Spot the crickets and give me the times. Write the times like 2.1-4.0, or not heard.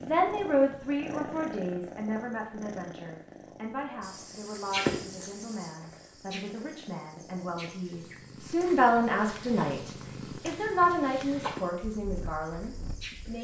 4.0-13.3.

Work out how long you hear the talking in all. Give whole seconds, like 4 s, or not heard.
13 s.